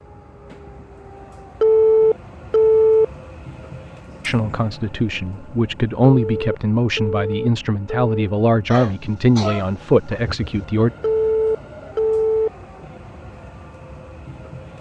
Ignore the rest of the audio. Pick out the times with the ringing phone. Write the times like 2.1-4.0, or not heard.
1.6-3.0, 6.0-8.3, 11.0-12.5.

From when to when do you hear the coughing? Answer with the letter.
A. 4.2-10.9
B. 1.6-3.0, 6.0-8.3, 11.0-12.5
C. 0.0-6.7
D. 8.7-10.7
D.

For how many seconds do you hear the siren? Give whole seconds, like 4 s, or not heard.
not heard.